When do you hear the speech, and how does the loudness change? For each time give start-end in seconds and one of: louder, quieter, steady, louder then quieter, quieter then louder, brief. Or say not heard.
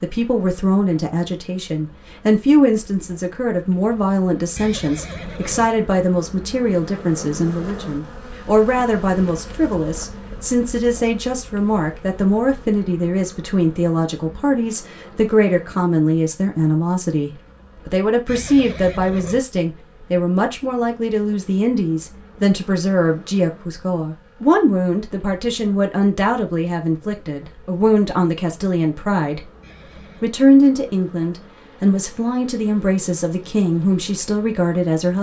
0.0-29.4 steady
30.2-35.1 steady.